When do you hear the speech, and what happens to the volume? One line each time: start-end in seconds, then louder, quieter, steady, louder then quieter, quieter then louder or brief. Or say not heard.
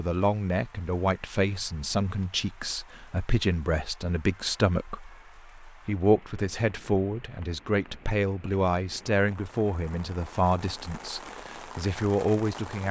0.0-12.8 steady.